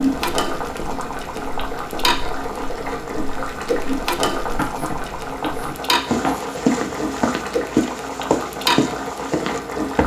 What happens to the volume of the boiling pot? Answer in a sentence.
The loudness of the boiling pot stays about the same.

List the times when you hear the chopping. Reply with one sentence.
You can hear the chopping from 4.5 to 6.5 s.